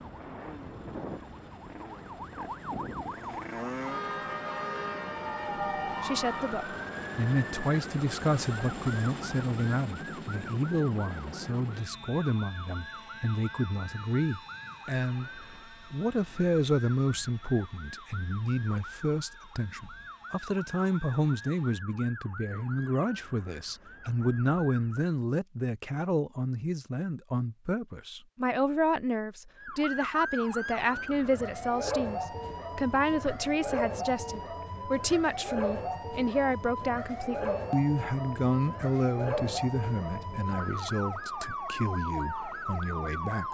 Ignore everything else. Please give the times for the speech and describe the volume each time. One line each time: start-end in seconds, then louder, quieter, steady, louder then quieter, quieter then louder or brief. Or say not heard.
6.0-43.4 steady.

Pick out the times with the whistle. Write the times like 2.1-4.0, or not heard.
not heard.